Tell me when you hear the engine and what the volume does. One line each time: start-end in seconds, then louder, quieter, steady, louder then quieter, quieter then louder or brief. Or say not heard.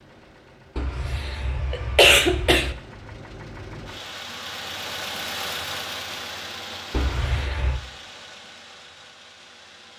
0.0-9.9 louder then quieter.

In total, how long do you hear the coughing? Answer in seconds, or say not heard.
3 s.